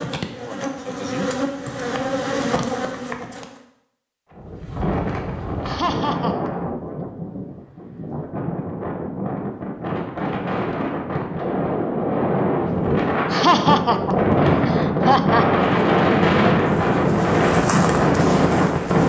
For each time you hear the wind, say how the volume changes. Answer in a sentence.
You can hear the wind from 4.3 to 19.0 s, getting louder.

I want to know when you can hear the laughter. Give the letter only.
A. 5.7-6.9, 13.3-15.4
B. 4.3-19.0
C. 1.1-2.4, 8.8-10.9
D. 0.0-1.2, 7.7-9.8
A.